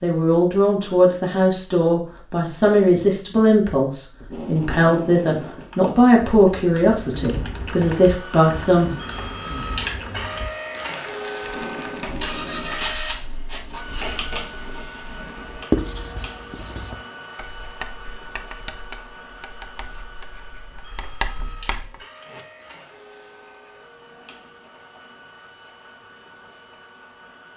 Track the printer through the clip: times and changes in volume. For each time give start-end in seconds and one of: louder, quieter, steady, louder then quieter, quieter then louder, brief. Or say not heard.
8.0-27.5 quieter.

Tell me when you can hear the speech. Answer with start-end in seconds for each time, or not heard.
0.0-8.9.